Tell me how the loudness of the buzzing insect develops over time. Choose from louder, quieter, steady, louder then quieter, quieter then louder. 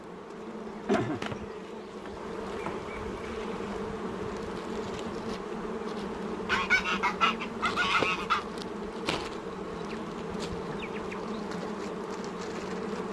steady.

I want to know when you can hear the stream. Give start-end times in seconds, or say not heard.
not heard.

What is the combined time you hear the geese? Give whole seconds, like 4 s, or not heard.
2 s.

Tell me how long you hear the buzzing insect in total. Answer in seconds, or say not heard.
13 s.